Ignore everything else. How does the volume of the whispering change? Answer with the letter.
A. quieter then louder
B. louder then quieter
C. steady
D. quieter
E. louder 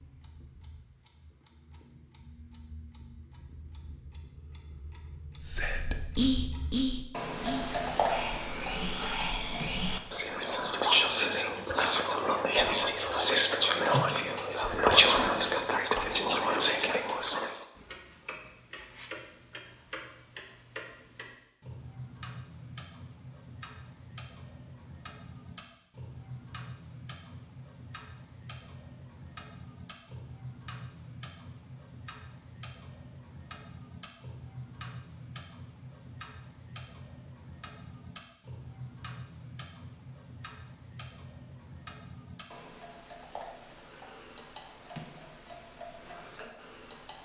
E.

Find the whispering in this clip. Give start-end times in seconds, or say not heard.
5.4-17.5.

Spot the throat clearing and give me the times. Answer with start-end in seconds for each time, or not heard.
not heard.